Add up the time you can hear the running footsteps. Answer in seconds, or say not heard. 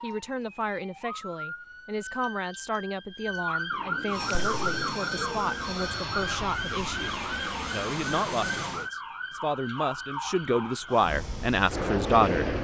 not heard.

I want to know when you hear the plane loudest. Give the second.
12 s.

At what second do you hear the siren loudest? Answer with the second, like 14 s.
4 s.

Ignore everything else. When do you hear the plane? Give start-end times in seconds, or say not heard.
4.0-8.9, 10.9-12.5.